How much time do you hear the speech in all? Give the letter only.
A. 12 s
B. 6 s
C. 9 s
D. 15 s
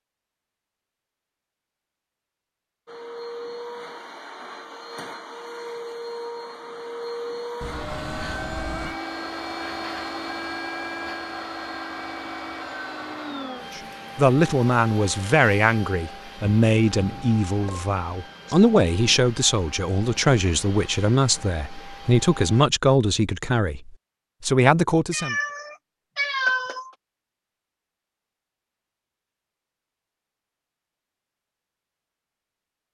A.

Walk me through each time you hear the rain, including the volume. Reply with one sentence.
You can't hear the rain here.